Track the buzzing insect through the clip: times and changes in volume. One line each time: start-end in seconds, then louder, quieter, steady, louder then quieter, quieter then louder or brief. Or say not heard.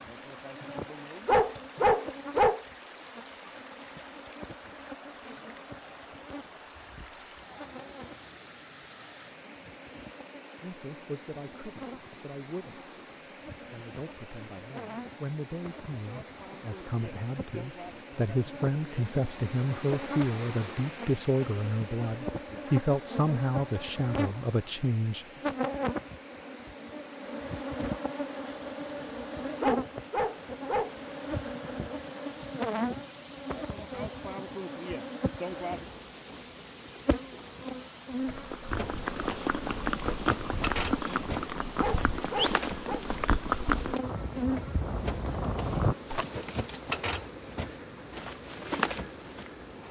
0.0-49.8 louder.